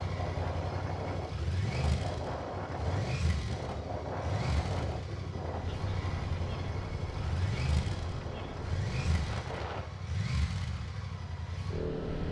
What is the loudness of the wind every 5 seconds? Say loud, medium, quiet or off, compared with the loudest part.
loud, loud, quiet.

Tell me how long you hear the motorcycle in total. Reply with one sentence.
The motorcycle can be heard for 12 seconds in total.